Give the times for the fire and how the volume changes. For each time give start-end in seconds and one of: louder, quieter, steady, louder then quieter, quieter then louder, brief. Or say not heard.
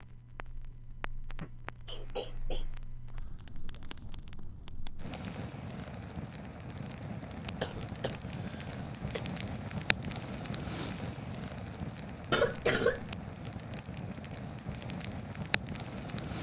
0.0-16.3 louder.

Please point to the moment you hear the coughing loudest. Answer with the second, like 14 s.
13 s.